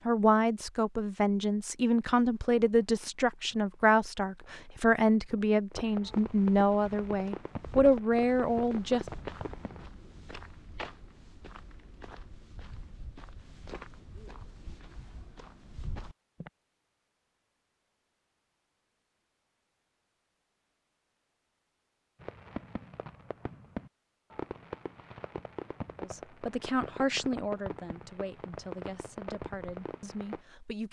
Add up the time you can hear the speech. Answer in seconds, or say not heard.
14 s.